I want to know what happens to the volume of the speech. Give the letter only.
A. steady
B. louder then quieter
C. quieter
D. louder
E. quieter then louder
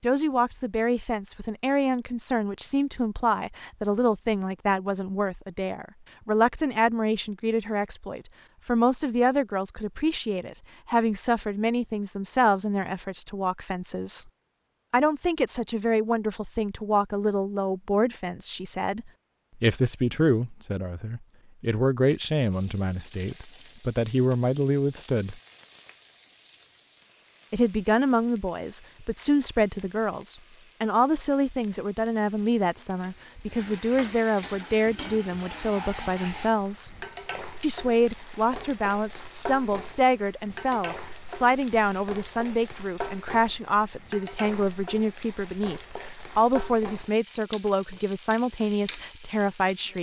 A.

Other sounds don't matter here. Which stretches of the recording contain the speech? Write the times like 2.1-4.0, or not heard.
0.0-14.2, 14.9-25.4, 27.5-37.0, 37.6-49.9.